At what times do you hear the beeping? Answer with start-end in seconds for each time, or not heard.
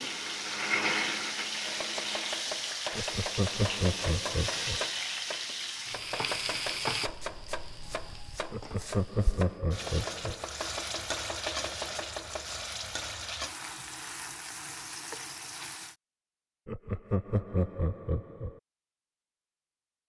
not heard.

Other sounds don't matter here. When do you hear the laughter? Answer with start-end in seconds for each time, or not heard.
2.9-4.8, 8.5-10.4, 16.6-18.6.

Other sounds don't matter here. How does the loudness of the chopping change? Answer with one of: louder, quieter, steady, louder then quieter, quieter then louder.
steady.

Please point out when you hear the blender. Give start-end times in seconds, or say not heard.
0.0-2.5.